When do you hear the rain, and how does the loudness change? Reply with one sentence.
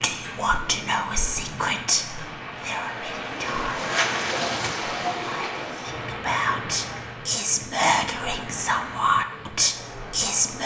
The rain can be heard from 0.0 to 10.6 s, getting louder then quieter.